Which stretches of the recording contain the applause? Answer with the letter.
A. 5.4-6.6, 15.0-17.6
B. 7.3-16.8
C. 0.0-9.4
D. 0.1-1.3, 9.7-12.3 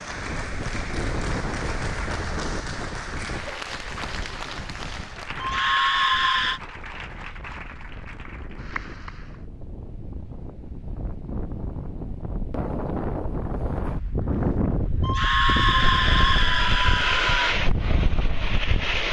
C.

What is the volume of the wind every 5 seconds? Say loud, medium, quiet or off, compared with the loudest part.
medium, quiet, loud, loud.